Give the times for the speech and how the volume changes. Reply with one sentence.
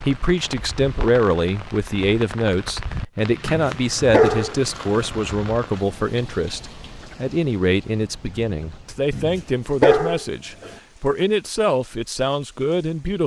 The speech can be heard from 0.0 to 13.2 s, at a steady volume.